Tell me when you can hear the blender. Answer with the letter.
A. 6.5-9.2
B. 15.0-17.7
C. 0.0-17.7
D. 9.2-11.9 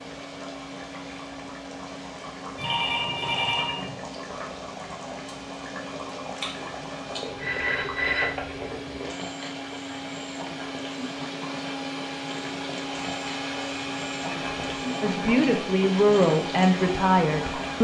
C.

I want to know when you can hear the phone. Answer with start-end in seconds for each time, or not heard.
2.5-4.0, 7.3-8.7, 12.8-14.7.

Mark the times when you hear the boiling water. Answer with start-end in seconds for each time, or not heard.
0.0-17.7.